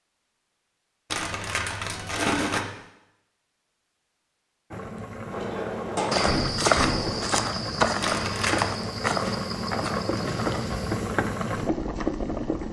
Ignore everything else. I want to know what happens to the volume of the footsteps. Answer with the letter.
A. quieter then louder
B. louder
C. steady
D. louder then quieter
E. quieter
E.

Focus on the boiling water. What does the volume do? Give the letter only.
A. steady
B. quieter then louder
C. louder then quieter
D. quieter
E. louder
E.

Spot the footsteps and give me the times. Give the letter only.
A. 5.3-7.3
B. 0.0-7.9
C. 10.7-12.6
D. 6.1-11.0
D.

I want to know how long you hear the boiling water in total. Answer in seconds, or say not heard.
8 s.